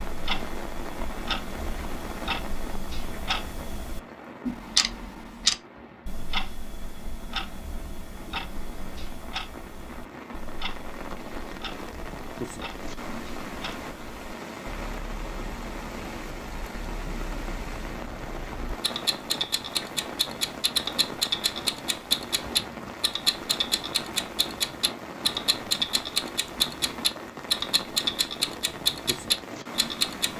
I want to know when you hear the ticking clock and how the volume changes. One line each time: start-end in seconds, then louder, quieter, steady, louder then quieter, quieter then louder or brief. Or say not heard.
0.0-30.3 quieter then louder.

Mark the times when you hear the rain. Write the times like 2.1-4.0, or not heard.
0.0-30.3.